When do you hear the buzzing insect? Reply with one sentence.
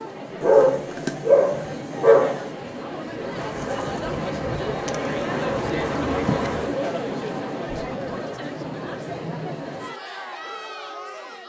You can hear the buzzing insect from 3.3 to 6.8 s.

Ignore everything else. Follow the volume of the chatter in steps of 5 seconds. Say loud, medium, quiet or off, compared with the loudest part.
loud, loud, medium.